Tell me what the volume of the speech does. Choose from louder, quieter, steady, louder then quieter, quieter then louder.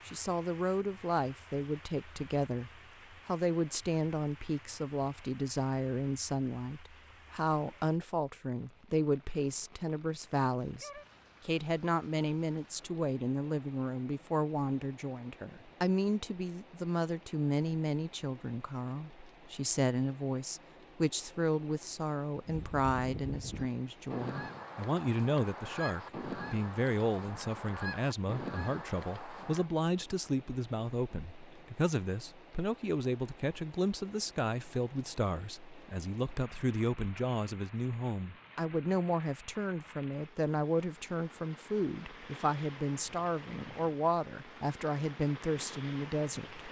steady.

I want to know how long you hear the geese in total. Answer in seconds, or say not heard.
7 s.